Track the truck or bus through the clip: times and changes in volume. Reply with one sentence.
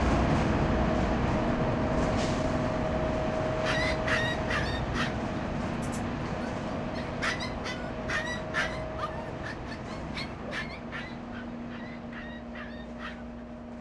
The truck or bus can be heard from 0.0 to 13.7 s, getting quieter.